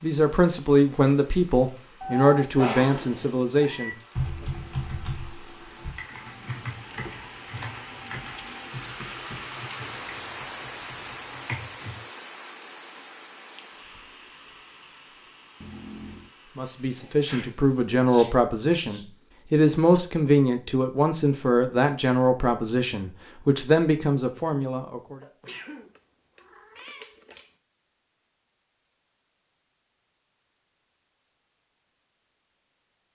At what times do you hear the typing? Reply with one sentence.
The typing can be heard from 4.2 to 11.9 s.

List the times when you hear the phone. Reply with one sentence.
You can't hear the phone here.